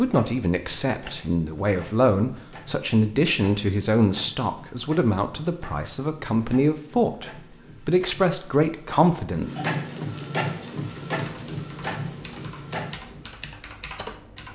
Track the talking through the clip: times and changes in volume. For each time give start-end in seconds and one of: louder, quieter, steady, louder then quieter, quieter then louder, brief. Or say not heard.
0.0-9.5 steady.